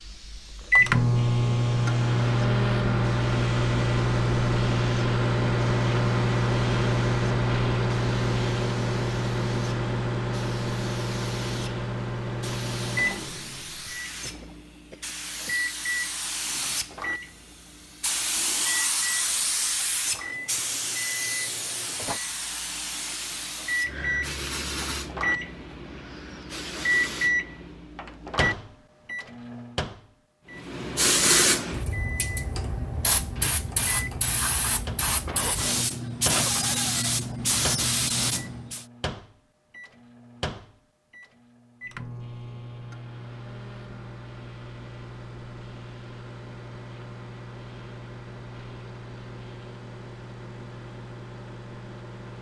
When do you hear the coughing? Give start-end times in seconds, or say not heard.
14.2-15.6, 35.2-36.8.